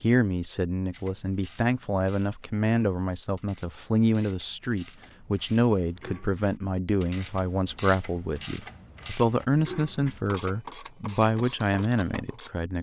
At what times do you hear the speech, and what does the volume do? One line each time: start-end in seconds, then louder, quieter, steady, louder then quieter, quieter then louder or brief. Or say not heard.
0.0-12.7 steady.